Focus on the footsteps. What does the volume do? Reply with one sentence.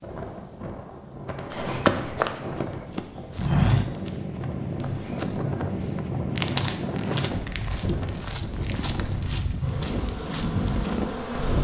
The volume of the footsteps goes down.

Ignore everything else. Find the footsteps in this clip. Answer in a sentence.
The footsteps can be heard from 1.5 to 11.2 s.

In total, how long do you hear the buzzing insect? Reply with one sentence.
The buzzing insect can be heard for 2 seconds in total.